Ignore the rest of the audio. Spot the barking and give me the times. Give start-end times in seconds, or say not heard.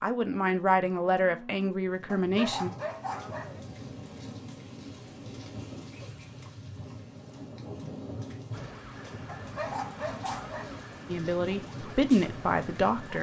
2.0-3.6, 9.2-10.8.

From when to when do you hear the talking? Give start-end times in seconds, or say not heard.
0.0-2.7, 11.1-13.1.